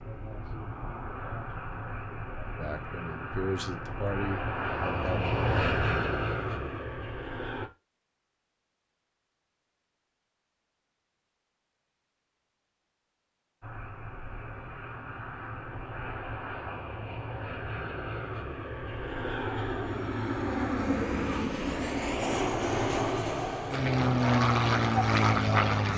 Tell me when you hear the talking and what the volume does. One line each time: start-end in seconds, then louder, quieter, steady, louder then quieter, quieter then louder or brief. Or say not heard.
0.0-5.3 louder.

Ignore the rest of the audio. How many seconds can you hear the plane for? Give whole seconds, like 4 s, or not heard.
20 s.